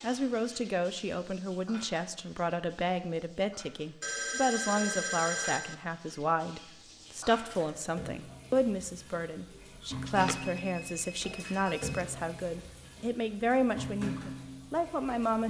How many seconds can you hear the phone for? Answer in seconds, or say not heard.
4 s.